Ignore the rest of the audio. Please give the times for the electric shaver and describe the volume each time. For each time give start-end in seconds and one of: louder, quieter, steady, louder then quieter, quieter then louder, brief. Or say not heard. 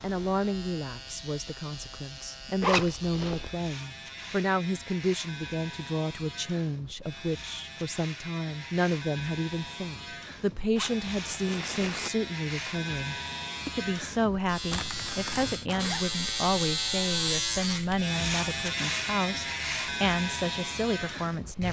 0.0-21.6 louder.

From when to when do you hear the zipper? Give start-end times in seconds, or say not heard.
2.6-3.5, 10.8-12.1, 14.7-16.0.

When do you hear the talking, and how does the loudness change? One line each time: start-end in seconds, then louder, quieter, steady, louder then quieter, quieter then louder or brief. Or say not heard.
0.0-21.6 steady.